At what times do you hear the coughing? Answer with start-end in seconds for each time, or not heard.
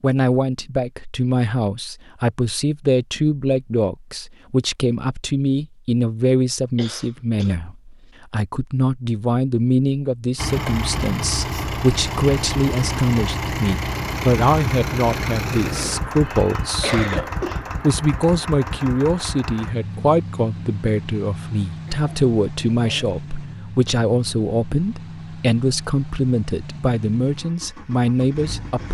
6.8-7.5, 16.2-17.6, 21.9-23.1.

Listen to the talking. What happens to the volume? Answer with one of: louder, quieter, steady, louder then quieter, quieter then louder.
steady.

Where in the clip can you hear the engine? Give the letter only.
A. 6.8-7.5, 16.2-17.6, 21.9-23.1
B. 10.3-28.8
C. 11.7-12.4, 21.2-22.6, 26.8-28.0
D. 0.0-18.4
B.